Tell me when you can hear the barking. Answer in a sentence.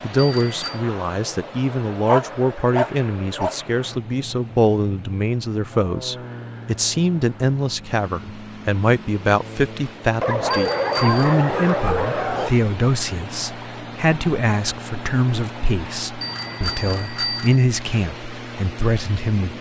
You can hear the barking from 2.0 to 3.6 s and from 10.2 to 12.6 s.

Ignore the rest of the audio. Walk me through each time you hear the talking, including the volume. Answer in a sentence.
You can hear the talking from 0.0 to 19.5 s, at a steady volume.